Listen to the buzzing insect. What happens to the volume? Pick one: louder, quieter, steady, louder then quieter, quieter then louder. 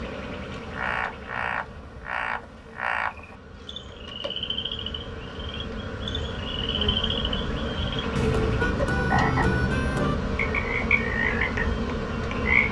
louder.